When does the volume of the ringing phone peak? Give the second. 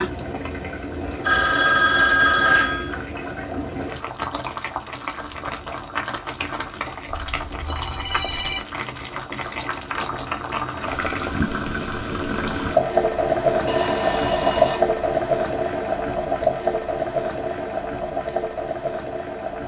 2 s.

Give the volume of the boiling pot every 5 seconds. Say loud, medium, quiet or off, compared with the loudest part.
medium, medium, loud, loud.